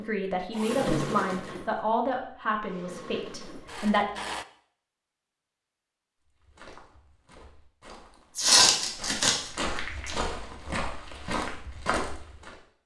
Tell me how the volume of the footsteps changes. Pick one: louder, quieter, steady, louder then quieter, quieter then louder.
louder.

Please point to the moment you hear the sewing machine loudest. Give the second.
1 s.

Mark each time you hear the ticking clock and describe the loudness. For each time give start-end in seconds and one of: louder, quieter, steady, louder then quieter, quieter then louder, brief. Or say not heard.
not heard.